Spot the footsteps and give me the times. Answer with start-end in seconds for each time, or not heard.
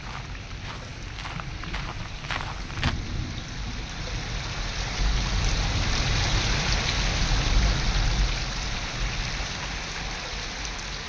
0.0-3.0.